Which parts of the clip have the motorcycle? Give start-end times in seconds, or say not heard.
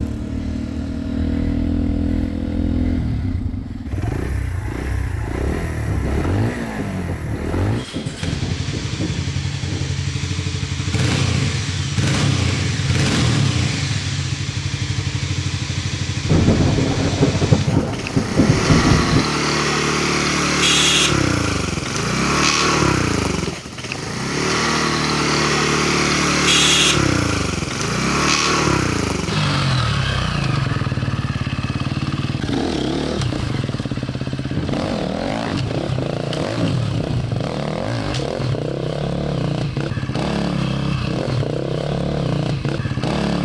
0.0-43.4.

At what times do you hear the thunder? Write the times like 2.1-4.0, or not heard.
5.8-10.0, 16.2-19.2, 34.5-37.5.